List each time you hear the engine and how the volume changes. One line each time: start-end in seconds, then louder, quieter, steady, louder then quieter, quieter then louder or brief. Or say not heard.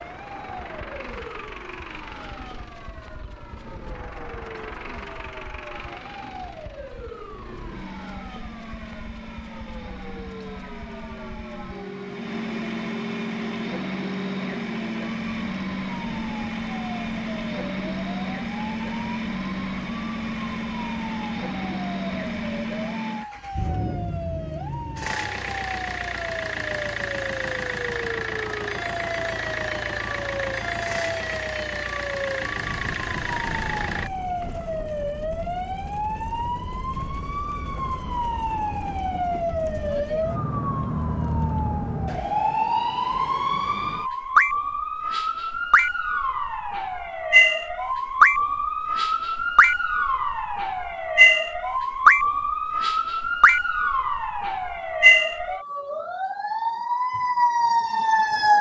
0.0-34.1 louder.